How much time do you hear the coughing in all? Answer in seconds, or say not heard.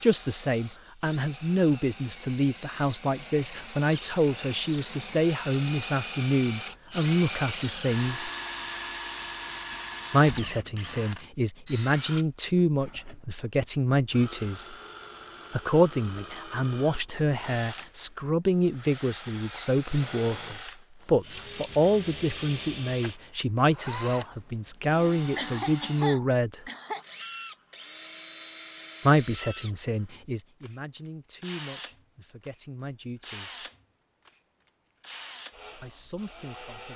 2 s.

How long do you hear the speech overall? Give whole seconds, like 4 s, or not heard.
30 s.